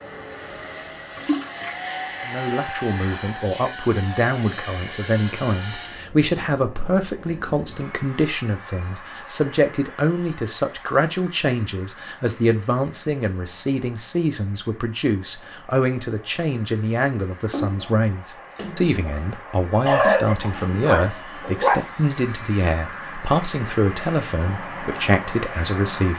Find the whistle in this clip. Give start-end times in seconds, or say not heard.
not heard.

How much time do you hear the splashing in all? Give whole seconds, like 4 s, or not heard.
3 s.